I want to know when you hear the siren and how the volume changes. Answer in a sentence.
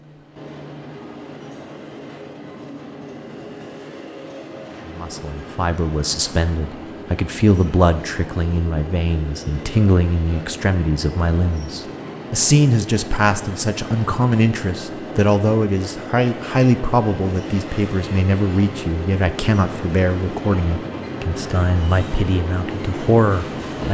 You can't hear the siren here.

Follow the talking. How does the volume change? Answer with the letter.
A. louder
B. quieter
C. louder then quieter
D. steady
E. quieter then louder
D.